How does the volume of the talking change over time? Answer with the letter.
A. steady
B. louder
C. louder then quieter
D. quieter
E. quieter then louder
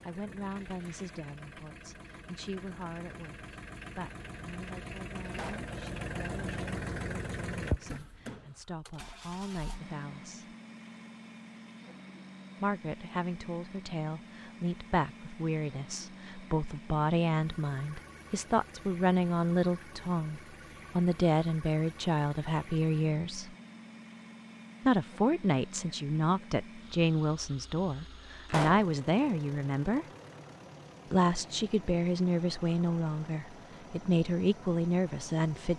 B.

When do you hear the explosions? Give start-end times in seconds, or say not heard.
5.3-5.7, 28.4-28.9.